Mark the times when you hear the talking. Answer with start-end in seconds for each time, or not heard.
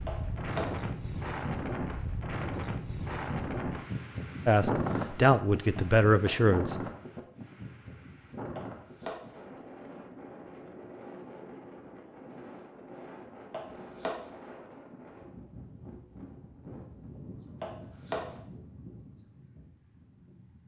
4.5-6.8.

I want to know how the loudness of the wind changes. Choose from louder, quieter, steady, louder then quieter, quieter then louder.
quieter.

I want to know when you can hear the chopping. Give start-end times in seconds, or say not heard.
0.1-0.8, 5.8-6.5, 8.6-9.3, 13.5-14.3, 17.6-18.4.